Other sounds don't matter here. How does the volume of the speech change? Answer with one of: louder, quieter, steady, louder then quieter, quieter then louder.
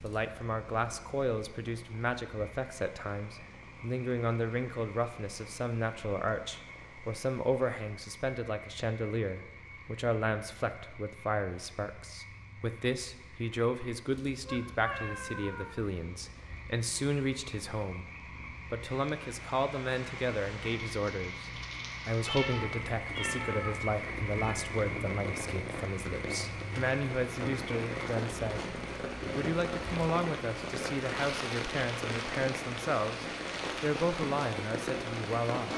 steady.